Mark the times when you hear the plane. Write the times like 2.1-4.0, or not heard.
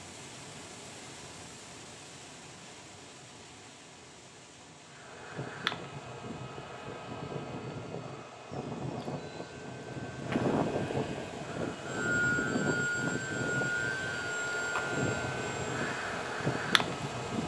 4.8-17.4.